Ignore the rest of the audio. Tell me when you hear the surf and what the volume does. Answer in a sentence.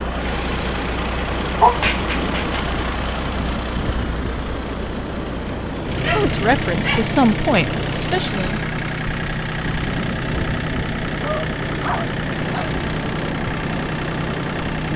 The surf can be heard from 0.0 to 14.9 s, at a steady volume.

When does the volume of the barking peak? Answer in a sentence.
The volume of the barking peaks at 2 seconds.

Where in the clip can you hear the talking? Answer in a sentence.
You can hear the talking from 6.0 to 8.6 s.